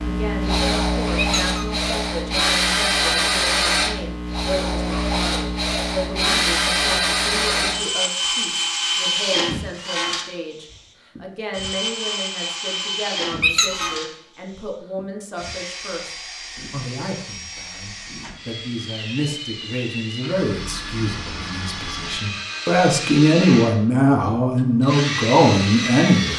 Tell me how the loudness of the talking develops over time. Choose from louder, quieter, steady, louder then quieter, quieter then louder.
louder.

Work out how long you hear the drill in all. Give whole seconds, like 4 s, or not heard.
26 s.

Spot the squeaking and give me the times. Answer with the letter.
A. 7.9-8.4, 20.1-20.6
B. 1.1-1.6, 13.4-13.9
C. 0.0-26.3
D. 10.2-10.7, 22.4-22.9
B.